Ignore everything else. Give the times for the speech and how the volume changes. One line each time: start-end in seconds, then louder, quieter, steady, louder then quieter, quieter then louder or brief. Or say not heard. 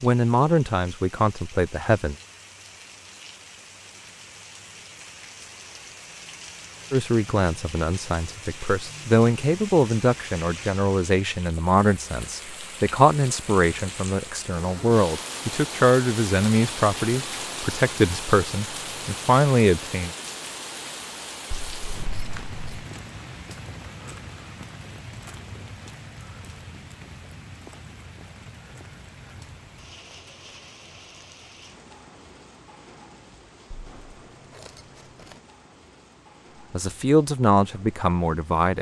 0.0-2.1 brief
6.9-20.1 steady
36.7-38.7 brief.